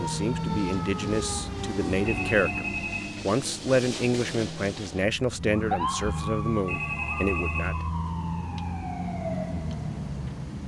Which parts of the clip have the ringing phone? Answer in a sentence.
The ringing phone can be heard from 2.0 to 3.3 s and from 6.7 to 7.9 s.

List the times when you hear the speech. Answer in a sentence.
You can hear the speech from 0.0 to 7.8 s.